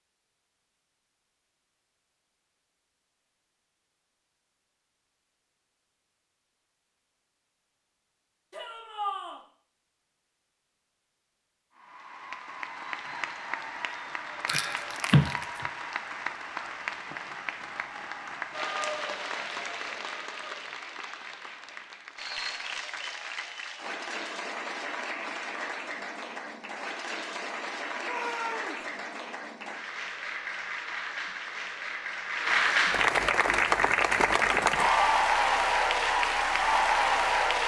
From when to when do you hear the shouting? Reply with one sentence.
You can hear the shouting from 8.5 to 9.4 s and from 28.0 to 28.9 s.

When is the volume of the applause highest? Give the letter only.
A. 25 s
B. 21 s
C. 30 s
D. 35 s
D.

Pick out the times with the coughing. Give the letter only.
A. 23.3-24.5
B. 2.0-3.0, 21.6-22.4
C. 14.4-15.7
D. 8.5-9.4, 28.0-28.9
C.